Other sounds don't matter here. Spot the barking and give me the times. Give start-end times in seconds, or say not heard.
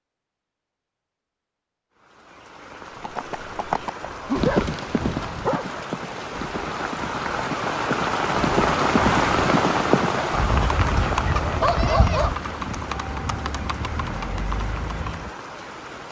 4.0-5.8, 10.3-12.3.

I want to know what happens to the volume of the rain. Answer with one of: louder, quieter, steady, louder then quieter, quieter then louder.
louder then quieter.